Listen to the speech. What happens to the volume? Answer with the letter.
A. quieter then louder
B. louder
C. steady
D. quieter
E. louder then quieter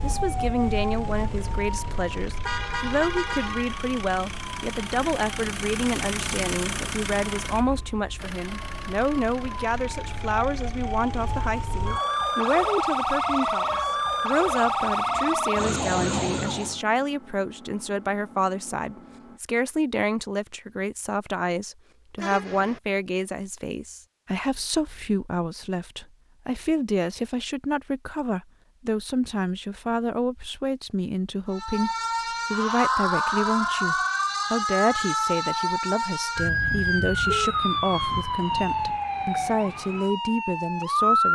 C.